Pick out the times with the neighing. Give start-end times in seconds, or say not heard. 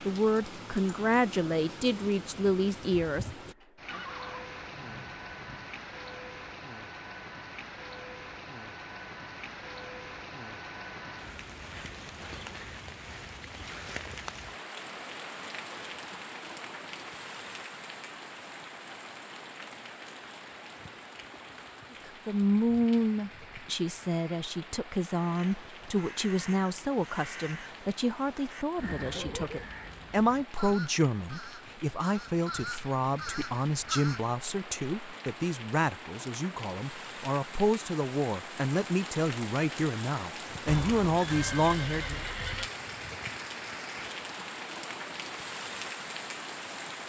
3.9-5.7, 28.8-29.6, 40.6-42.7.